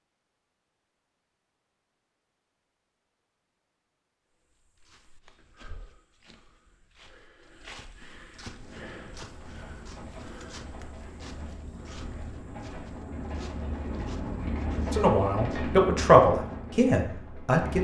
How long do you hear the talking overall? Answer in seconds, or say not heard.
3 s.